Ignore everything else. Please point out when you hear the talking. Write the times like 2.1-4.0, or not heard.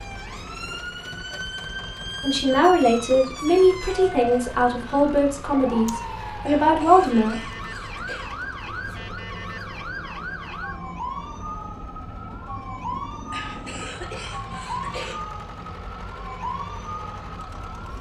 2.2-7.4.